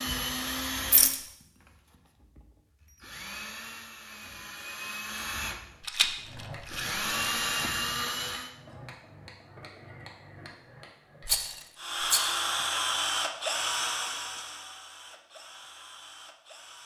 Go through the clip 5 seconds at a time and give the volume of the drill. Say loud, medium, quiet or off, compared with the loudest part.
medium, loud, loud, quiet.